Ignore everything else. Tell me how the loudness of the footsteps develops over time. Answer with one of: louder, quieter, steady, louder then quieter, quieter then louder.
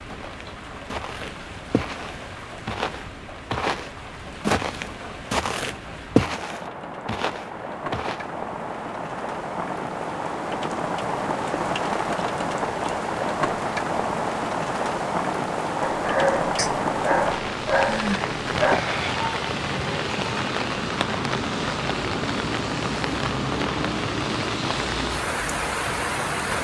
louder then quieter.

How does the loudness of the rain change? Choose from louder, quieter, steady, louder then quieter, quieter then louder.
louder.